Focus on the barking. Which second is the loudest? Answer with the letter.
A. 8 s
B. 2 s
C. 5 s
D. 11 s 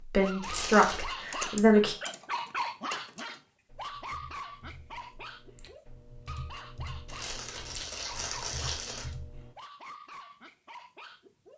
B.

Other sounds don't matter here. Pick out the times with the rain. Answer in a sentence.
The rain can't be heard in this clip.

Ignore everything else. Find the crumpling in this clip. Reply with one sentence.
You can hear the crumpling from 0.4 to 1.1 s and from 7.0 to 9.1 s.